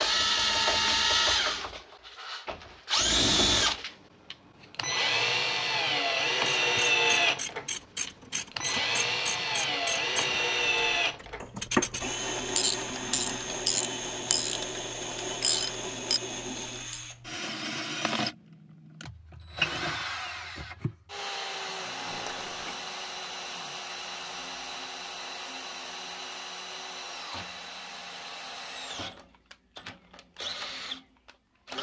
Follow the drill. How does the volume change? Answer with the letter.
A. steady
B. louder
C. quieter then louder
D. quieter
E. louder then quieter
D.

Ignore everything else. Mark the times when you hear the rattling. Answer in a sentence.
You can hear the rattling from 22.1 to 22.8 s.